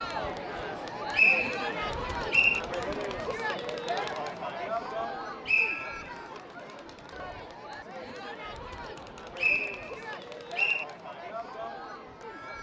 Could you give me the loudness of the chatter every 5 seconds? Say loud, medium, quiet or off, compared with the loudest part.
loud, medium, medium.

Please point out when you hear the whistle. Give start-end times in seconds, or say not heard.
1.1-2.6, 5.5-6.2, 8.9-10.8.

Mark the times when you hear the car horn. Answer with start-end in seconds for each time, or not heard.
not heard.